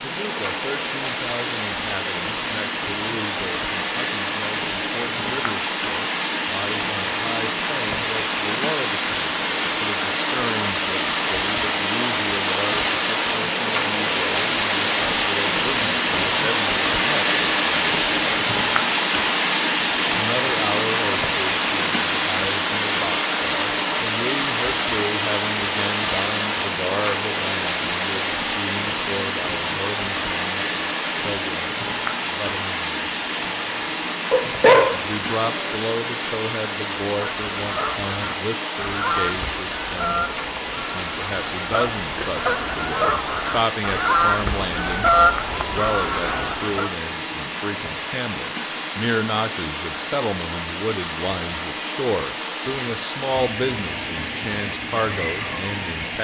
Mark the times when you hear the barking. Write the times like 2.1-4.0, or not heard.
34.3-35.8.